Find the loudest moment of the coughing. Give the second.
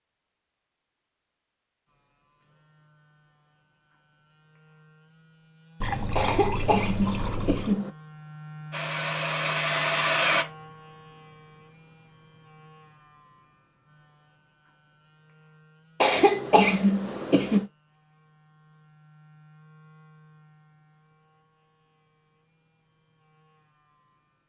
17 s.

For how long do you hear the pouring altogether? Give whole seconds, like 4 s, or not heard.
2 s.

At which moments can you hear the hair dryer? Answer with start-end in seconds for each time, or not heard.
8.7-10.4.